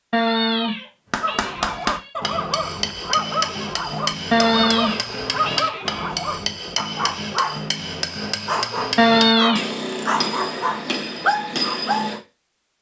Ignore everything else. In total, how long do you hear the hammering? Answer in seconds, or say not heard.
11 s.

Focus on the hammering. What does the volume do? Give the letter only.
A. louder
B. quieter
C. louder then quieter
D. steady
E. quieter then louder
D.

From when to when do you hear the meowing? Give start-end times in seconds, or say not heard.
0.1-2.1, 4.3-6.2, 8.9-9.7.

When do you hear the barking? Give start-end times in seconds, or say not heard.
1.2-7.6, 8.4-12.2.